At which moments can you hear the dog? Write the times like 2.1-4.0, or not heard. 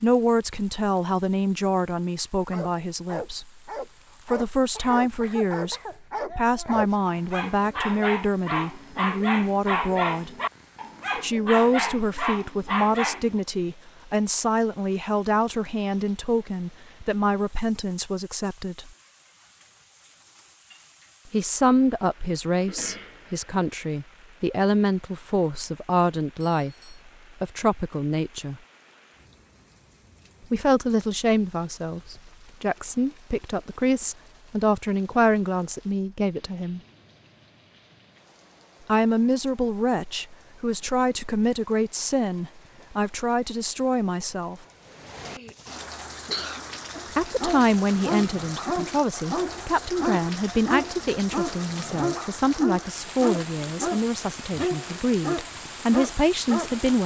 2.5-13.4, 46.9-57.0.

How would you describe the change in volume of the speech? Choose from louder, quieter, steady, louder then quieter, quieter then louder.
steady.